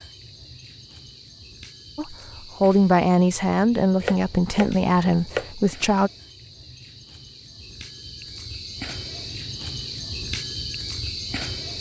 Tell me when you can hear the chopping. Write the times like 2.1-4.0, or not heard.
4.0-5.5.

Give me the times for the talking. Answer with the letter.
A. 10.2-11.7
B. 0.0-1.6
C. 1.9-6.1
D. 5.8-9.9
C.